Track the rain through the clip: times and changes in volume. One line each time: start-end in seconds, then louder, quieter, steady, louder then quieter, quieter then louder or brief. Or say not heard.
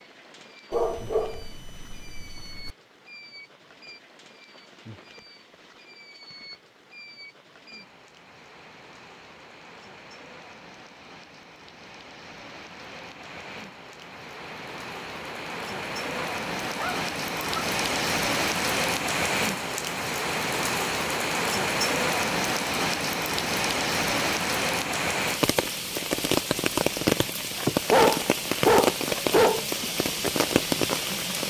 0.0-31.4 louder.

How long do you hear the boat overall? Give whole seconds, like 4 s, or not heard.
not heard.